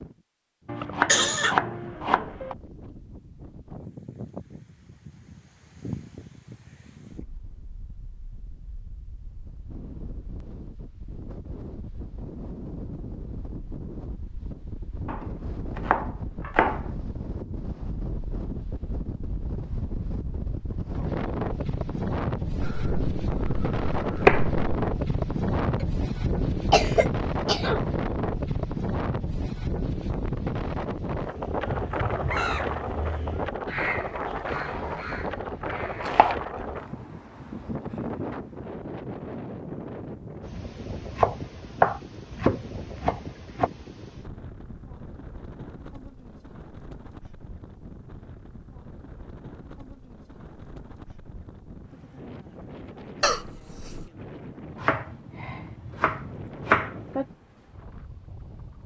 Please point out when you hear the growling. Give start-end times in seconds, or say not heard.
not heard.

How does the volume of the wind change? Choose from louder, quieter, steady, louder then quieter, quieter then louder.
louder then quieter.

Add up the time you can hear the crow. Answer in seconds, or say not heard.
5 s.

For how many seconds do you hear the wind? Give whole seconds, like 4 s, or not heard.
59 s.